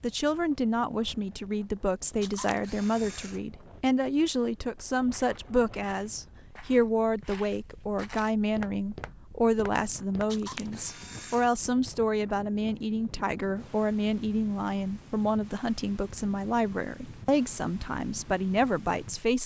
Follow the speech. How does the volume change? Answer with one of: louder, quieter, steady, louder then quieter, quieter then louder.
steady.